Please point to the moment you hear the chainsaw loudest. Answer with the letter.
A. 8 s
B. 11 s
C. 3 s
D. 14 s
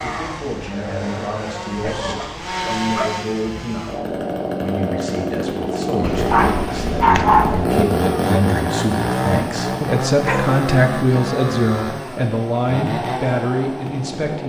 A.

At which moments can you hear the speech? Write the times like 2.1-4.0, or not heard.
0.0-4.0, 4.6-14.4.